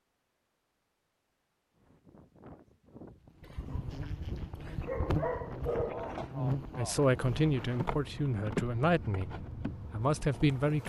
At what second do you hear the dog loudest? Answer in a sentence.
The loudest moment of the dog is at 6 seconds.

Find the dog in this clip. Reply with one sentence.
The dog can be heard from 3.4 to 6.3 s.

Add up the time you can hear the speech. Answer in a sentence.
The speech can be heard for 4 seconds in total.